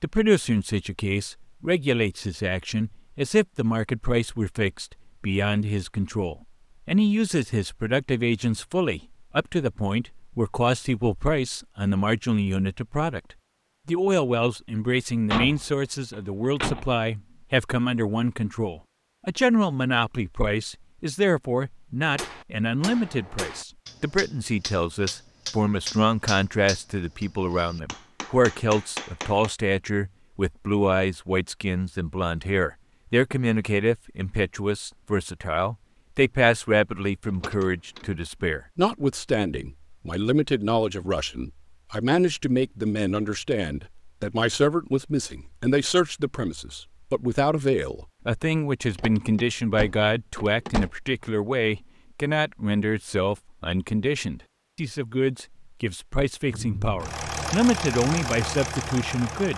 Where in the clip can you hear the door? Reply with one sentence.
The door can be heard from 15.3 to 16.9 s, from 37.2 to 38.1 s and from 49.0 to 50.9 s.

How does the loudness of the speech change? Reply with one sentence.
The loudness of the speech stays about the same.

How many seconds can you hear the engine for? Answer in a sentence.
The engine can be heard for 3 seconds in total.